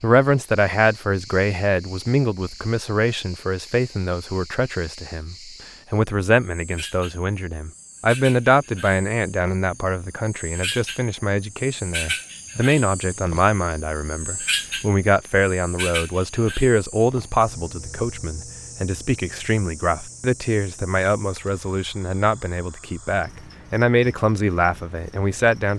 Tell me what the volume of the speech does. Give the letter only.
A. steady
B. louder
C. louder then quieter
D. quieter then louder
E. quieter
A.